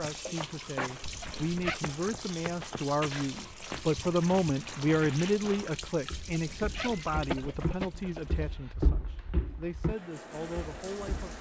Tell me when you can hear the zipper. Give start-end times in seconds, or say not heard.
1.0-1.8, 6.2-8.0.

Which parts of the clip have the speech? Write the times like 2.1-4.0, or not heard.
0.0-11.3.